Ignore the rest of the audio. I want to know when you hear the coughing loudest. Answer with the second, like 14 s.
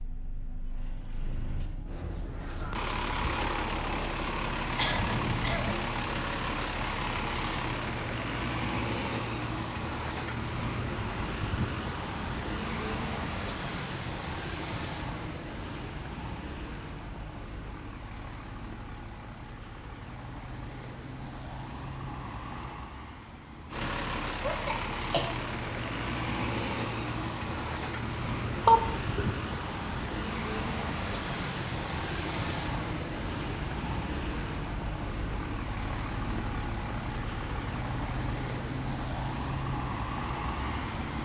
29 s.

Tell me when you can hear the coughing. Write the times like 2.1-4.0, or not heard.
4.8-5.8, 24.4-25.3, 28.6-29.2.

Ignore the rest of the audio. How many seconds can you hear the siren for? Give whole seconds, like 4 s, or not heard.
not heard.